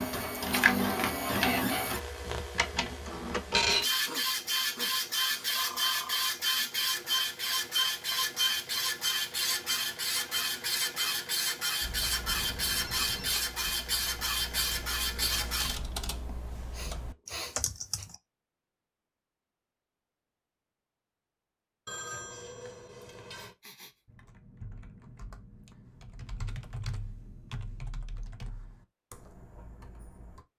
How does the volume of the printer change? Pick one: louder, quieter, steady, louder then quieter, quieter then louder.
steady.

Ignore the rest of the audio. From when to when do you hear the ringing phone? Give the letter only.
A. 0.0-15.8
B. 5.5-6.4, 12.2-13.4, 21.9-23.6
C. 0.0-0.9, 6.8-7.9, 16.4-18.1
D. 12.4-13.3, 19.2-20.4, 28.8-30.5
B.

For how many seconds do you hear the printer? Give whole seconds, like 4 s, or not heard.
16 s.